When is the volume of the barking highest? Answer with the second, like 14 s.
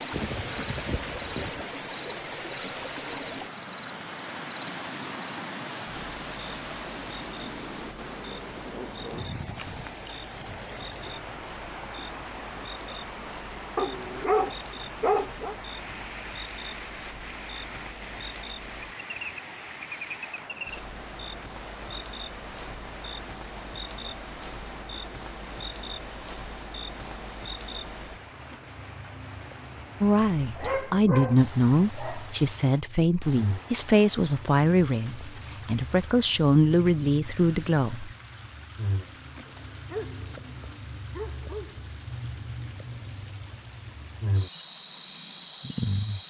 14 s.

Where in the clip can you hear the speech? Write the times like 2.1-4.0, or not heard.
30.0-38.1.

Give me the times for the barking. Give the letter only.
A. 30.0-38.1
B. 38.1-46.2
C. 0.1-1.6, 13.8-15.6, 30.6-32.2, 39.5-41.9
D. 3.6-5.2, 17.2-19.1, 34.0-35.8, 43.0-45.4
C.